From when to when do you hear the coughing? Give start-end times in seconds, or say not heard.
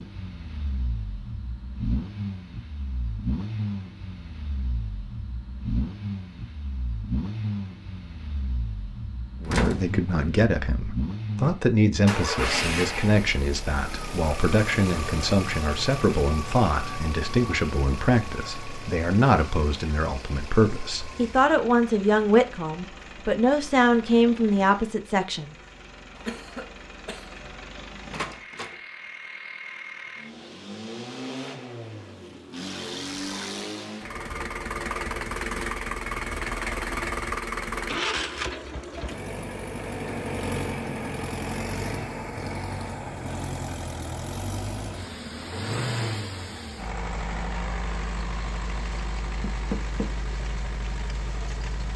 26.1-27.5.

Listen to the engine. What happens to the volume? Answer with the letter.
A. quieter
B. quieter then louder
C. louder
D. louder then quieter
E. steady
B.